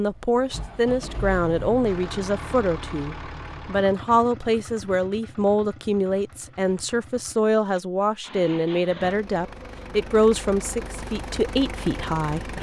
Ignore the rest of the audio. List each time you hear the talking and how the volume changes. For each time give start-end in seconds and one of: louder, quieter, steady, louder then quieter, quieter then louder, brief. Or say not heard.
0.0-12.5 steady.